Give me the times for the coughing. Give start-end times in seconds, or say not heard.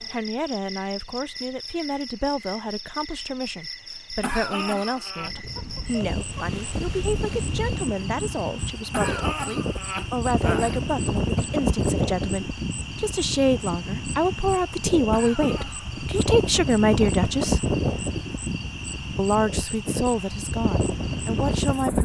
4.2-5.3, 8.9-10.8, 15.1-15.9.